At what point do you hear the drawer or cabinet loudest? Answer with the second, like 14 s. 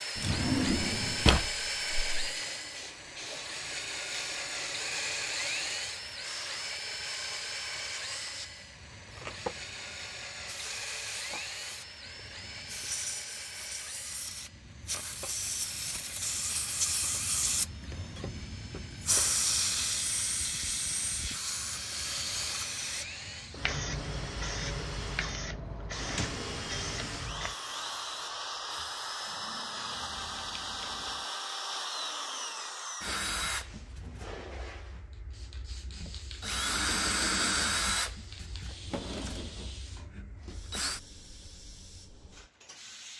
1 s.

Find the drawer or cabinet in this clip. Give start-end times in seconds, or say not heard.
0.1-2.3, 25.9-26.9, 38.6-39.8.